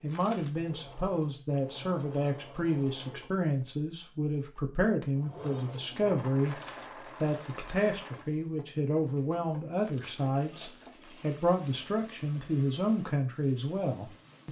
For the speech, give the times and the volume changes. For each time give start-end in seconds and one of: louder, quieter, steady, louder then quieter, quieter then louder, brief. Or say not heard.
0.0-6.6 steady
7.2-14.4 steady.